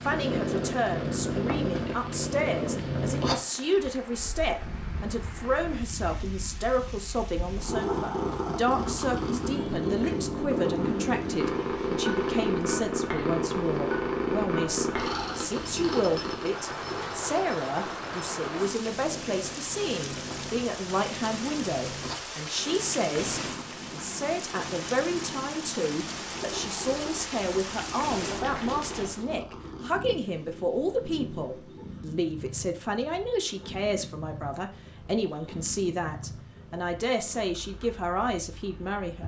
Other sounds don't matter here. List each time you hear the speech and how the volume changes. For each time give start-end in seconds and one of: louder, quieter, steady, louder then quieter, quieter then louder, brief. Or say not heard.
0.0-39.2 steady.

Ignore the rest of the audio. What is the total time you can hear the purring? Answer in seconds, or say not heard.
39 s.